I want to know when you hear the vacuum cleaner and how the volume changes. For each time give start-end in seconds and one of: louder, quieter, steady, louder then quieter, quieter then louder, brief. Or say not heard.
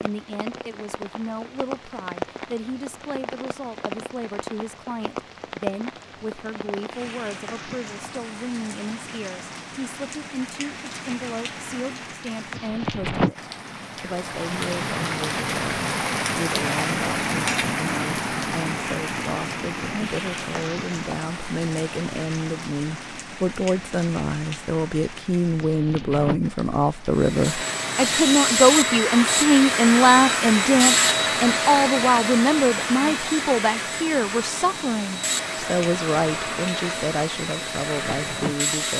27.1-38.9 quieter.